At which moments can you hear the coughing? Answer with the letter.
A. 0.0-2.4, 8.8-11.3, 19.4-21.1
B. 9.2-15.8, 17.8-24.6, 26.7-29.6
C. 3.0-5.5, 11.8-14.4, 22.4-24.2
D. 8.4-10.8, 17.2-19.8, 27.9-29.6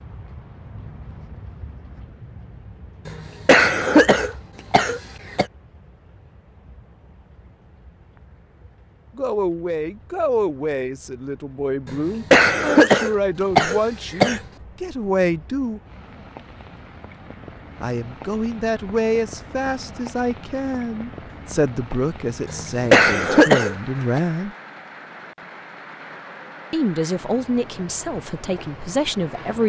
C.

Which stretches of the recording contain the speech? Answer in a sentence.
You can hear the speech from 9.2 to 15.8 s, from 17.8 to 24.6 s and from 26.7 to 29.6 s.